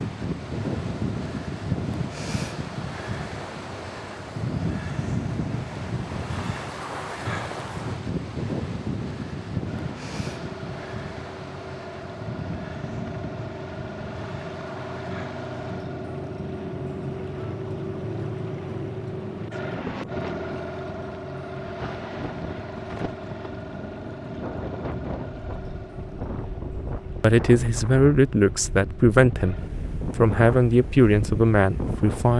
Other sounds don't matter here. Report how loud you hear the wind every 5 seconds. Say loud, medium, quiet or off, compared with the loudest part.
loud, loud, medium, medium, medium, medium, loud.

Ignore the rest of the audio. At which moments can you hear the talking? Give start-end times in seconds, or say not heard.
27.2-32.3.